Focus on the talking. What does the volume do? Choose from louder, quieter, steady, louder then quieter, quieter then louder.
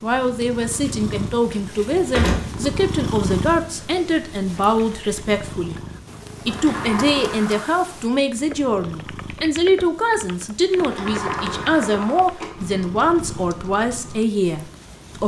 steady.